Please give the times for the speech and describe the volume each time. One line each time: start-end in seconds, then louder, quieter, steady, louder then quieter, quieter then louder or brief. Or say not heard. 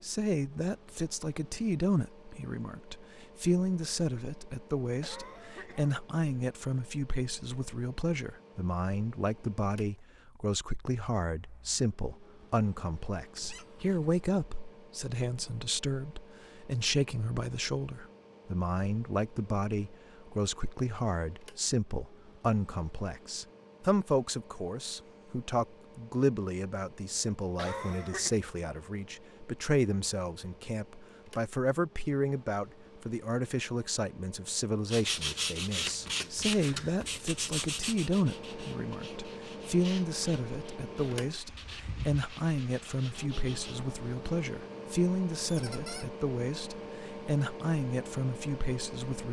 0.0-49.2 steady.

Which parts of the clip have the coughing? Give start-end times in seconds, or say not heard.
5.0-6.0, 27.6-28.4.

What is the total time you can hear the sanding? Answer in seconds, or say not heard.
9 s.